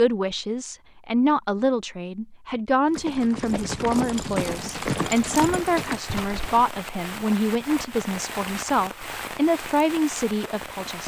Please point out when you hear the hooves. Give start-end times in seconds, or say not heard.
2.9-6.8.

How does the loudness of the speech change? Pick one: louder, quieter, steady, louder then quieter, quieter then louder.
steady.